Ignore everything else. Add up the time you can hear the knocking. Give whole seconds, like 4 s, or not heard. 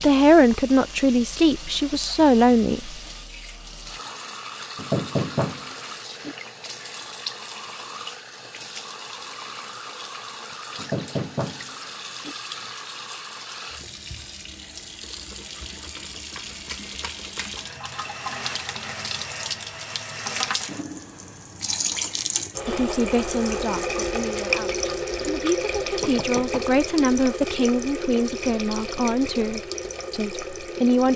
4 s.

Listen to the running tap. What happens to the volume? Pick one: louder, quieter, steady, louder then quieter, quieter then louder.
louder.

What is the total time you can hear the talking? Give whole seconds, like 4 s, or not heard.
11 s.